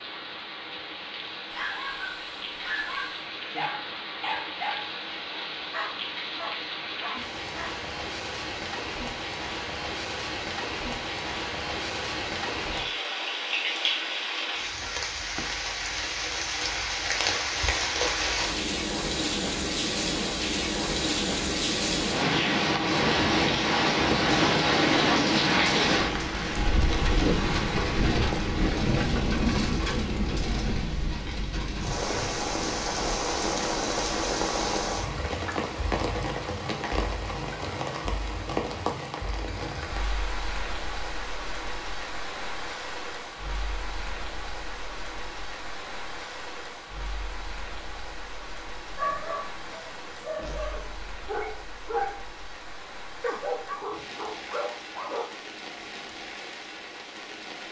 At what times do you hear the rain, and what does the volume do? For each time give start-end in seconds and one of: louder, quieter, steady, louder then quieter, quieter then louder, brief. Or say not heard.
0.0-57.6 louder then quieter.